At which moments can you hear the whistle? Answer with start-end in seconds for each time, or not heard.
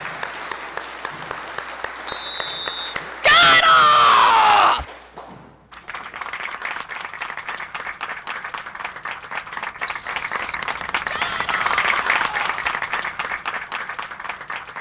2.0-3.0, 9.8-11.6.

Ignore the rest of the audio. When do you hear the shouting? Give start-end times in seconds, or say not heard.
3.2-4.8, 11.1-12.7.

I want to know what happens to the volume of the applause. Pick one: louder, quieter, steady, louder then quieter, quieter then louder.
louder.